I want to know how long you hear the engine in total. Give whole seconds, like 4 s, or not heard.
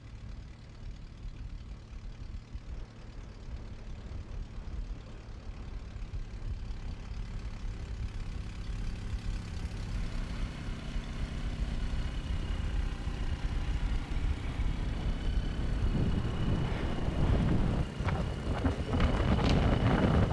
20 s.